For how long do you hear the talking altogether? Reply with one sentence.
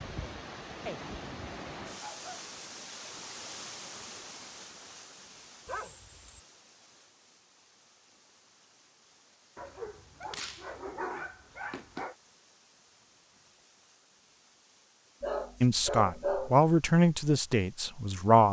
The talking can be heard for 3 seconds in total.